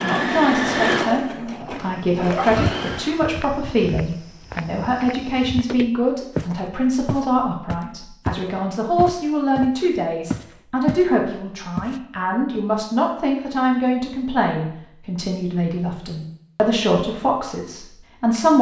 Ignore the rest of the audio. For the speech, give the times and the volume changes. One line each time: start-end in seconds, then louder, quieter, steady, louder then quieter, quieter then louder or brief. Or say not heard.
0.0-18.5 steady.